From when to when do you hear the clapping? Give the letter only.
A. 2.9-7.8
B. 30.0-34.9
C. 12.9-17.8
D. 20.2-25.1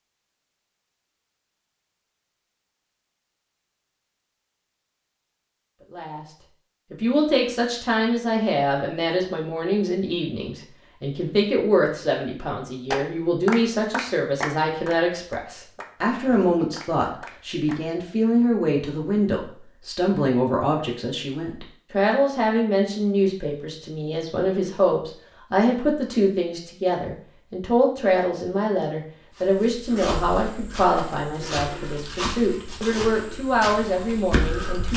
C.